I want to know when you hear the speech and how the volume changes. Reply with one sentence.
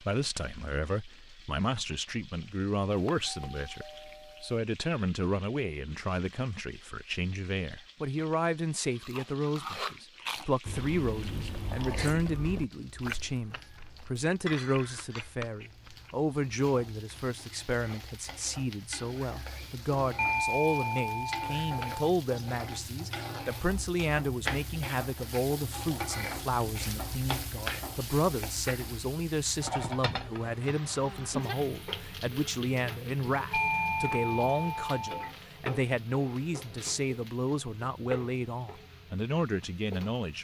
The speech can be heard from 0.0 to 40.3 s, at a steady volume.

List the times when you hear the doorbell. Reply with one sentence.
You can hear the doorbell from 3.0 to 4.5 s, from 20.1 to 21.9 s and from 33.5 to 35.3 s.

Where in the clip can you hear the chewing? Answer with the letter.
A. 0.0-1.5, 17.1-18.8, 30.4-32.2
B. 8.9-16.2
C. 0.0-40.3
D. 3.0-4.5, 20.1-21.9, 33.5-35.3
B.